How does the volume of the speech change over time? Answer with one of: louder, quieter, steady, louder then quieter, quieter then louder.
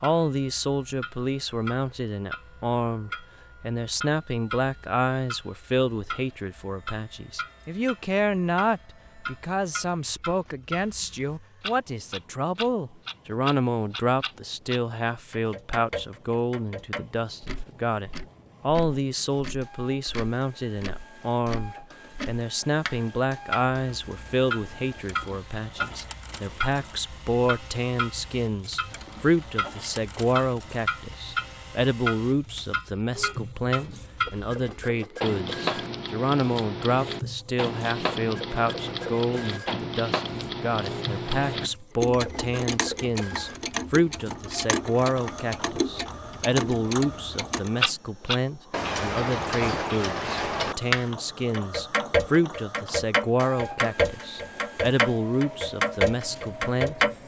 steady.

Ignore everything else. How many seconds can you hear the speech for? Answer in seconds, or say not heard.
57 s.